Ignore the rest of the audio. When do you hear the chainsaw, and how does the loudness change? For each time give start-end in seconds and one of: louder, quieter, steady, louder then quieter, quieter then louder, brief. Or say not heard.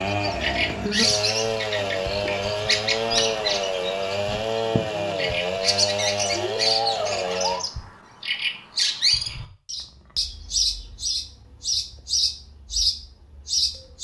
0.0-7.7 steady.